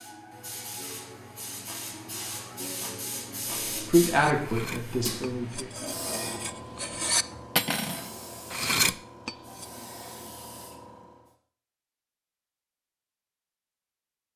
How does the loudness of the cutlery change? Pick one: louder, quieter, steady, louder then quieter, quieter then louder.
louder.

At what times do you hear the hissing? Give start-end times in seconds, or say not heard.
0.0-11.3.